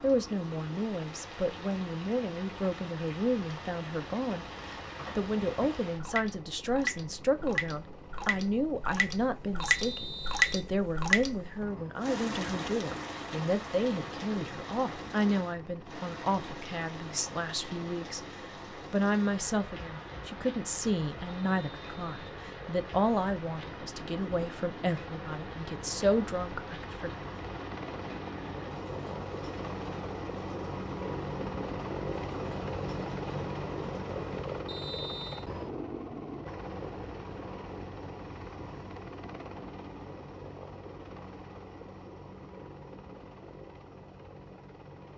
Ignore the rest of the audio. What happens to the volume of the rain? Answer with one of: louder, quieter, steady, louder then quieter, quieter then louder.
louder then quieter.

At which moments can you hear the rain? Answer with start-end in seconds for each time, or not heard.
0.0-34.6.